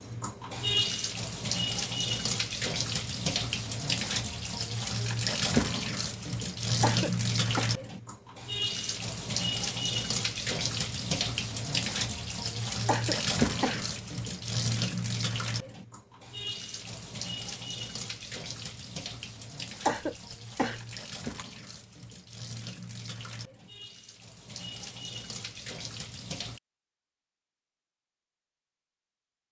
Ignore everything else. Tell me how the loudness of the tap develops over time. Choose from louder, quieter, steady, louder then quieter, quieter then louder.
quieter.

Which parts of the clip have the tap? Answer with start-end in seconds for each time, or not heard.
0.0-26.6.